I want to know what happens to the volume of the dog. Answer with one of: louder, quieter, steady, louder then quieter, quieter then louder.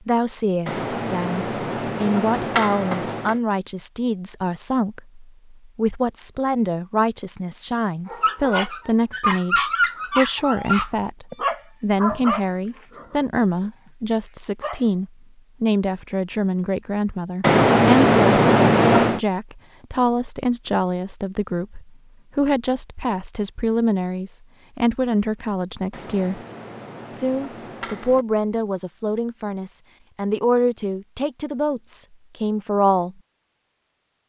quieter.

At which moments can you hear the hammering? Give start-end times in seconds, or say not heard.
0.7-3.4, 17.4-19.2, 25.9-28.2.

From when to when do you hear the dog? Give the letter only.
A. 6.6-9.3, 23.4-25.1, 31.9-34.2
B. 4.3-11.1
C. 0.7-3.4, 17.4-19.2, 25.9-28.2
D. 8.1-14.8
D.